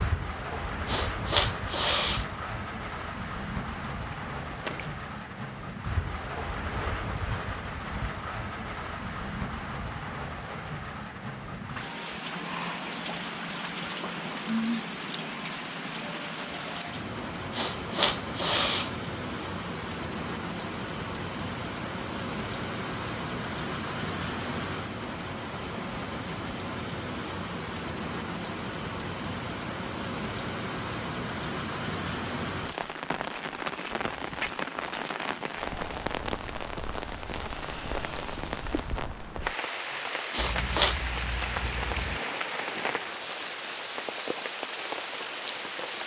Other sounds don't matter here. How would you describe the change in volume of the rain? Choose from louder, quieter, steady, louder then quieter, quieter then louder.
steady.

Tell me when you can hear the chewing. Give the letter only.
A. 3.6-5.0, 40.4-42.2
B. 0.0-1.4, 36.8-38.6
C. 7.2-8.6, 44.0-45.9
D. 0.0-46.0
A.